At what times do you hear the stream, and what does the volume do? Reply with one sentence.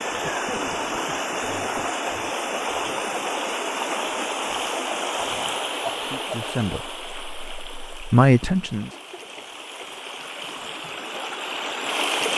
You can hear the stream from 0.0 to 12.3 s, getting quieter then louder.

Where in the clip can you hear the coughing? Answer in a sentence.
The coughing can be heard from 0.2 to 1.9 s, from 5.8 to 6.2 s and from 8.9 to 9.5 s.